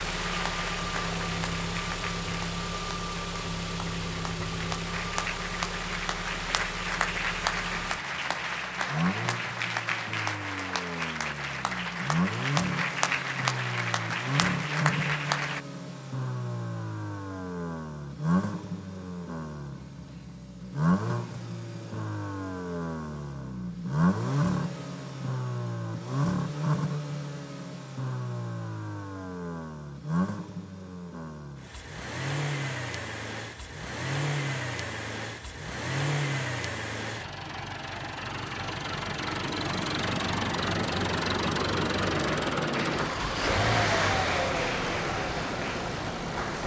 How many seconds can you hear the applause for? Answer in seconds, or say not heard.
20 s.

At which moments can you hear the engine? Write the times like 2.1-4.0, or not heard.
0.0-46.6.